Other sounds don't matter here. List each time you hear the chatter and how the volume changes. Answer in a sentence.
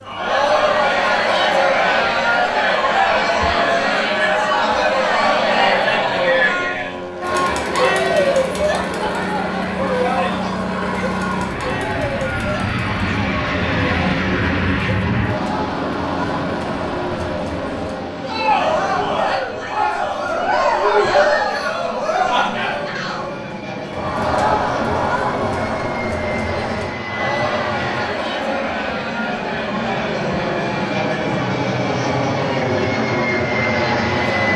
You can hear the chatter from 0.0 to 34.5 s, getting quieter.